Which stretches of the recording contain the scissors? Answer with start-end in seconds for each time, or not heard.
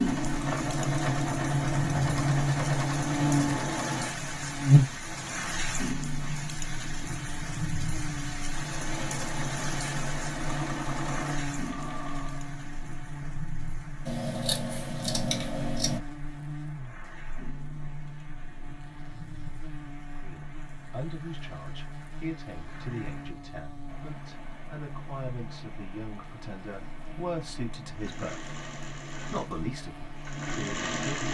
14.1-16.0.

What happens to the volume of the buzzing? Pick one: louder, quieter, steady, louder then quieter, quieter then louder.
quieter.